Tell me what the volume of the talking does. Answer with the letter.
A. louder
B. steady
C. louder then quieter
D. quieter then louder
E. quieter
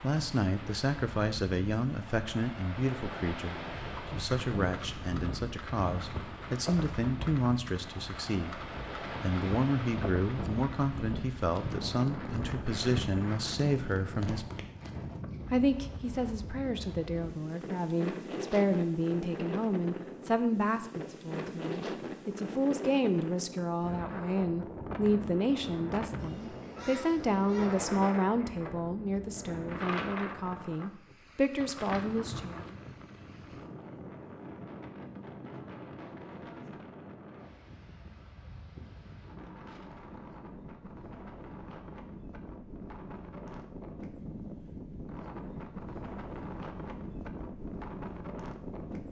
B.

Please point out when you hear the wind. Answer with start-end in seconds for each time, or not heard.
0.0-49.0.